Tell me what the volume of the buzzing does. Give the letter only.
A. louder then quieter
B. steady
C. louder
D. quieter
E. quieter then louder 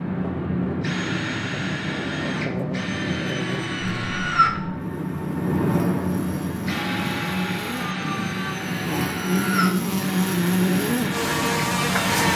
C.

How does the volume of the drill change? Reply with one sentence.
The volume of the drill stays about the same.